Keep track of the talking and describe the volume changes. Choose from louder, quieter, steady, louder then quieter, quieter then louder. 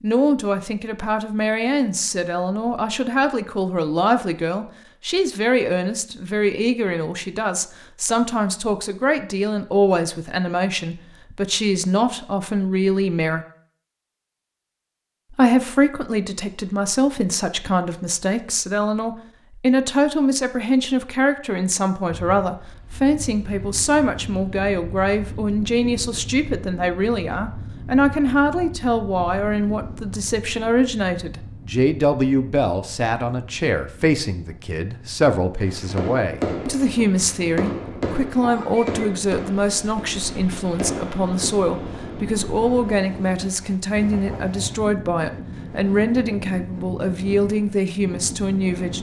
steady.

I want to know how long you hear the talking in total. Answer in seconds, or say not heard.
47 s.